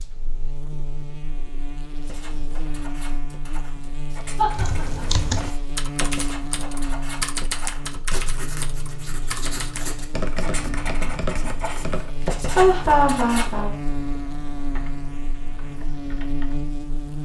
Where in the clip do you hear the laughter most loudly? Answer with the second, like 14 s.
13 s.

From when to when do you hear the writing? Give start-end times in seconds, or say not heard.
2.0-13.6.